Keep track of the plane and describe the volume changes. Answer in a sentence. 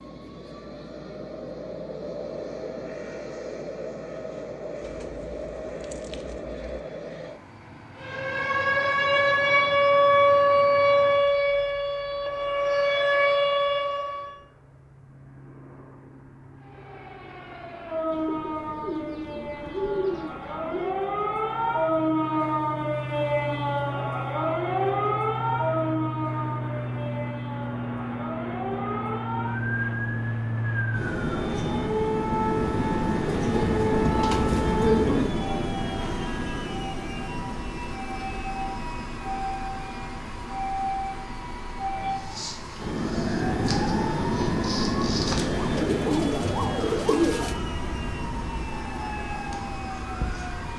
The loudness of the plane goes down, then up.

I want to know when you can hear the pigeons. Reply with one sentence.
The pigeons can be heard from 4.8 to 6.8 s, from 18.1 to 20.9 s, from 33.2 to 35.3 s and from 45.7 to 47.5 s.